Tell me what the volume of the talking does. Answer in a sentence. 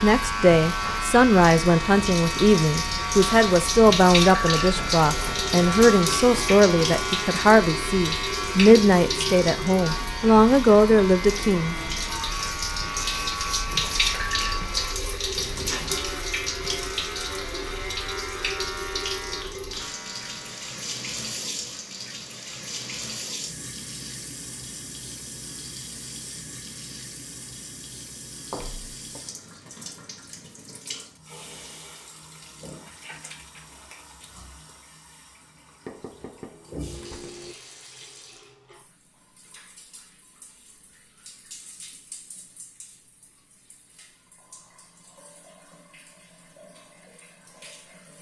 The volume of the talking stays about the same.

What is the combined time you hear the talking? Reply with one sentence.
The talking can be heard for 12 seconds in total.